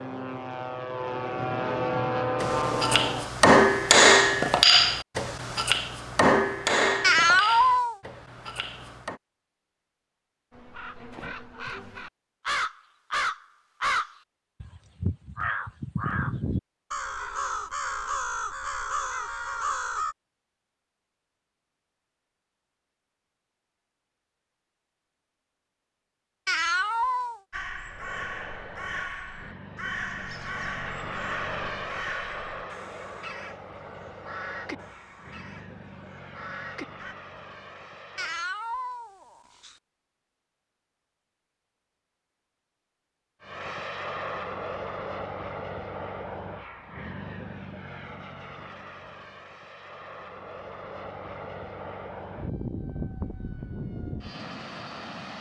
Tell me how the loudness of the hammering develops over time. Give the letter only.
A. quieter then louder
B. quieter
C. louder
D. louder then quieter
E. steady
B.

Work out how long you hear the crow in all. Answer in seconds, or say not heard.
19 s.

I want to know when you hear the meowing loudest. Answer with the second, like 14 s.
7 s.